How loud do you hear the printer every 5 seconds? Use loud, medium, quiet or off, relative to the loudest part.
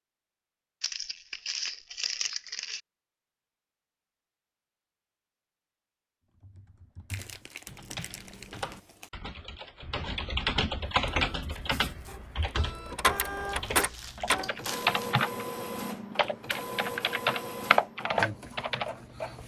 off, off, loud, medium.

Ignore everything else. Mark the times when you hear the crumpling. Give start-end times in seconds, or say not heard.
0.8-2.8, 7.1-9.1, 13.4-15.2.